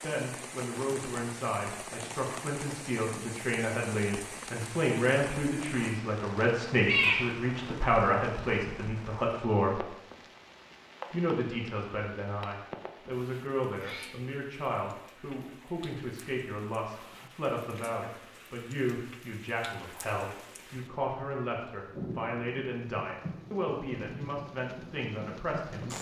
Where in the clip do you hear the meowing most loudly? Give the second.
7 s.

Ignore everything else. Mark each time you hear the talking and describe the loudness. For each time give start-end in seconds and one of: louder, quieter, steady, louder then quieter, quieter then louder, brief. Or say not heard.
0.0-9.8 louder
11.1-25.9 steady.